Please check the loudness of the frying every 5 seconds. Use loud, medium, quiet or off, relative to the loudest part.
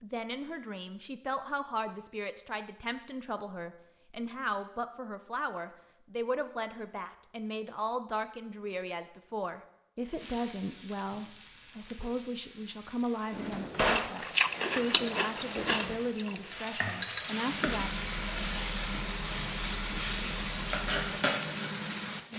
off, off, quiet, loud, loud.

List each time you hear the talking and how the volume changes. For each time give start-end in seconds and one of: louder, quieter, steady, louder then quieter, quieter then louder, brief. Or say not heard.
0.0-17.9 steady.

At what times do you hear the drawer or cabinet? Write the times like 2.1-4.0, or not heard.
13.3-14.1.